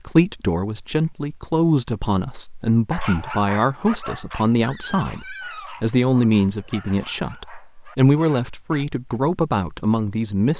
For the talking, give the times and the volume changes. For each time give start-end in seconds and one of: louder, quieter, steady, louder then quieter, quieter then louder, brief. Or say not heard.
0.1-10.5 steady.